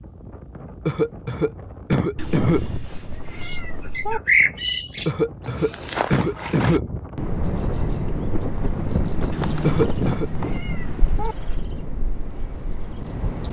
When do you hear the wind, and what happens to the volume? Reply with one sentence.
The wind can be heard from 0.0 to 13.4 s, getting louder then quieter.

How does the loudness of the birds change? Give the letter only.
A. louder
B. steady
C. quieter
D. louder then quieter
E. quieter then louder
C.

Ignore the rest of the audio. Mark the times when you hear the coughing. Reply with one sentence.
You can hear the coughing from 0.8 to 2.9 s, from 5.0 to 7.1 s and from 9.6 to 10.2 s.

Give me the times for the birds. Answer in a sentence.
The birds can be heard from 3.5 to 13.4 s.